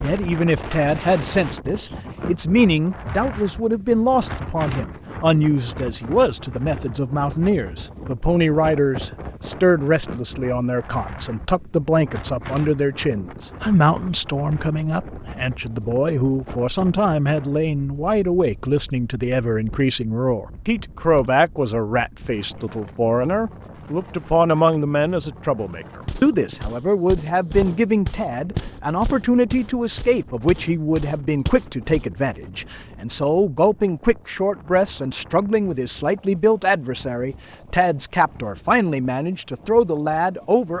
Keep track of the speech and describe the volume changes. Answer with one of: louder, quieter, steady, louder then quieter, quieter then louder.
steady.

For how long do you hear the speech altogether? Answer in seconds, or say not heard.
41 s.